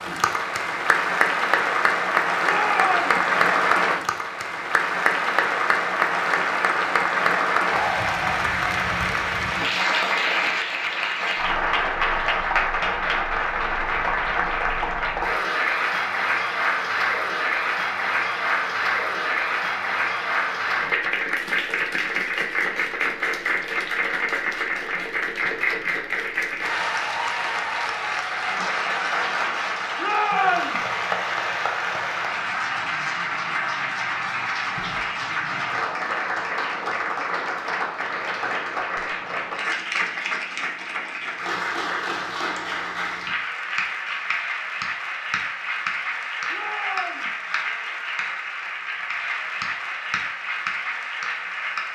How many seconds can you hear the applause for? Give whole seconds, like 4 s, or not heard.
52 s.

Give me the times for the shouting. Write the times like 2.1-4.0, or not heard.
2.4-3.1, 29.9-30.8, 46.5-47.4.